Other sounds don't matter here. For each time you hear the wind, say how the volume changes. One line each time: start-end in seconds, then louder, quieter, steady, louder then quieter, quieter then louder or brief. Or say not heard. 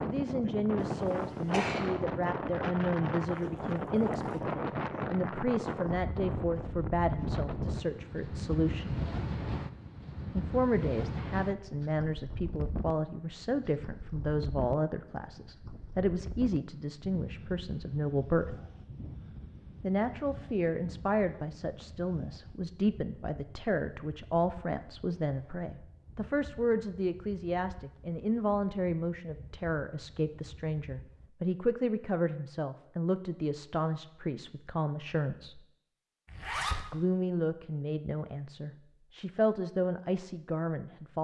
0.0-31.3 quieter.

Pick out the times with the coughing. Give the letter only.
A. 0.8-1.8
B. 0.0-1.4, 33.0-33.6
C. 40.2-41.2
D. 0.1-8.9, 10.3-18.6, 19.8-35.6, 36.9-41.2
A.